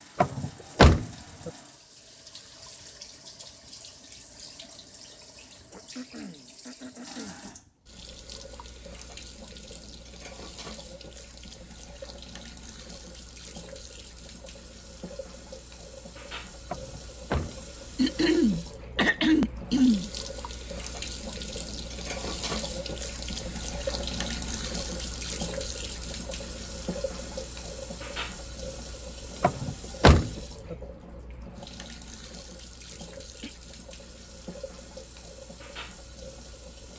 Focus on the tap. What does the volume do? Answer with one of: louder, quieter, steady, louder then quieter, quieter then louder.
louder then quieter.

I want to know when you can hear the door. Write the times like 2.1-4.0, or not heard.
0.2-1.5, 16.7-17.6, 29.4-30.8.